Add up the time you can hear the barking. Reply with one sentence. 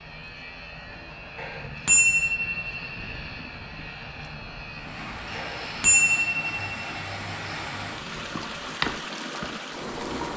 You can't hear the barking here.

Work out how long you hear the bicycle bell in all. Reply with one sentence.
The bicycle bell can be heard for 3 seconds in total.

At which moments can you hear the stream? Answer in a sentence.
The stream can be heard from 4.8 to 10.3 s.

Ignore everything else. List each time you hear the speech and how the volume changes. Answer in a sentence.
The speech can't be heard in this clip.